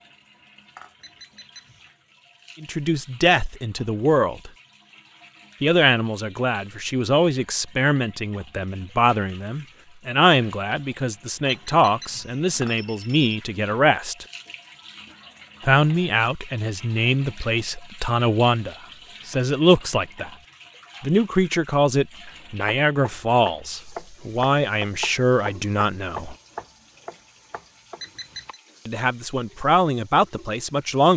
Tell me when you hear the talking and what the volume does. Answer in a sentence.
You can hear the talking briefly from 2.6 to 4.5 s; from 5.6 to 14.2 s, at a steady volume; from 15.7 to 20.3 s, getting louder; from 21.0 to 26.4 s, at a steady volume; and briefly from 28.9 to 31.1 s.